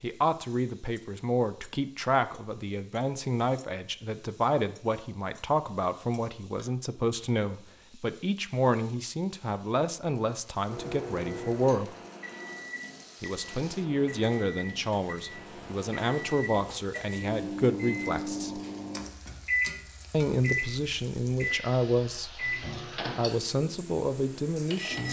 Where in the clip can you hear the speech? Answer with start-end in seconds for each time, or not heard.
0.0-11.9, 13.2-18.6, 20.1-25.0.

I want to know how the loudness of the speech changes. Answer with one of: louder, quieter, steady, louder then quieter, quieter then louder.
steady.